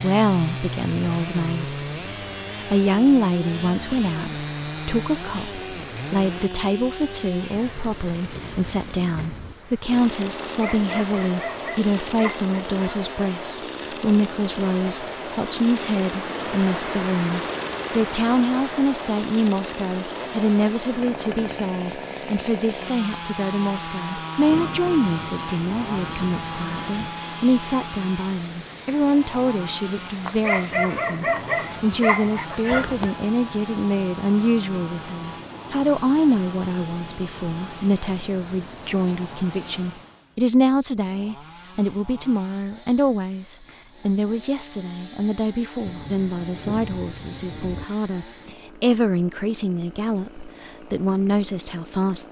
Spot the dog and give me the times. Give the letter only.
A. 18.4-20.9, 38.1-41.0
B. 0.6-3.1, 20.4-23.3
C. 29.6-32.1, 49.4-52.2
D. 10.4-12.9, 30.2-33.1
D.